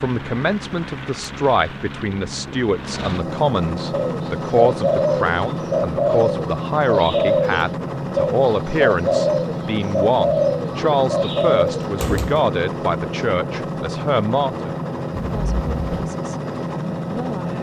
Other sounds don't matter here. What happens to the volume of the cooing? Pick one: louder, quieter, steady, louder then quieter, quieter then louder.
steady.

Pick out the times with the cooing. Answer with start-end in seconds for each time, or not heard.
3.9-12.4.